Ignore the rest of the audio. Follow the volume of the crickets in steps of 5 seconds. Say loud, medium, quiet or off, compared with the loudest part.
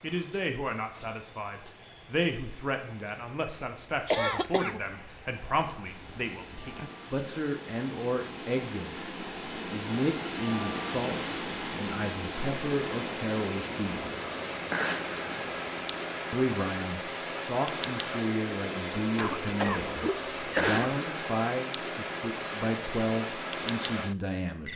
quiet, quiet, loud, loud, loud.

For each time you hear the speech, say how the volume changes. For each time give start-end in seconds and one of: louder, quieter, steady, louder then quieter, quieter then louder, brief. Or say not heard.
0.0-14.2 steady
16.3-24.7 steady.